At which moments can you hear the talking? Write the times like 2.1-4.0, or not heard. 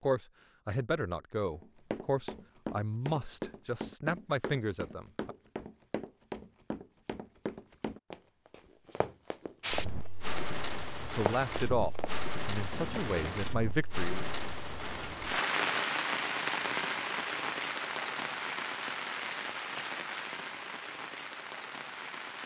0.0-5.3, 11.0-14.2.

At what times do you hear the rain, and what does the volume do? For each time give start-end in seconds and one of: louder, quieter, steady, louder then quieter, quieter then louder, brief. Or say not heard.
9.6-22.4 louder then quieter.